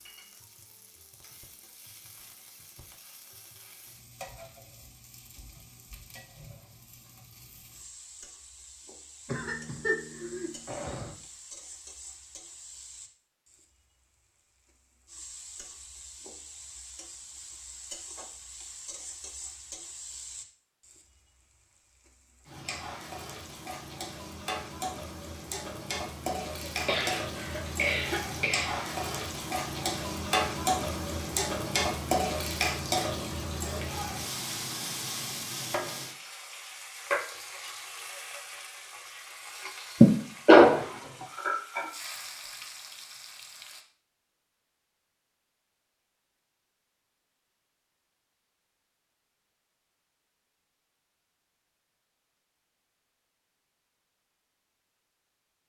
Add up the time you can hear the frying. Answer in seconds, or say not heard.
43 s.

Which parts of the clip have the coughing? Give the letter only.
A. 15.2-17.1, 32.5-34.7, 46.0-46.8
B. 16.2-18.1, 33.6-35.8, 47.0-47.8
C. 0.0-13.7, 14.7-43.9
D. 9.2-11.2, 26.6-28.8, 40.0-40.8
D.